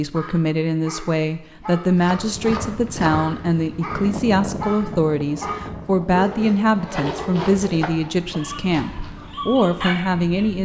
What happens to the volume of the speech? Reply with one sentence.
The volume of the speech stays about the same.